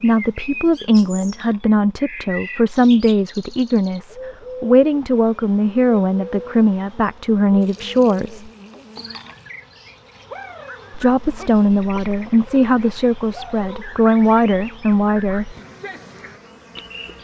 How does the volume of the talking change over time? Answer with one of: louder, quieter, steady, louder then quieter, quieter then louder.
steady.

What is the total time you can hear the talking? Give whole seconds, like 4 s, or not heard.
13 s.